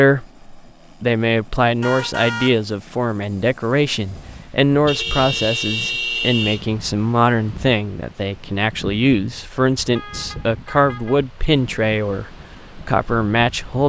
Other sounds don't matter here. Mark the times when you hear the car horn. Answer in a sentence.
The car horn can be heard from 1.8 to 2.6 s, from 4.8 to 6.7 s and from 9.5 to 11.2 s.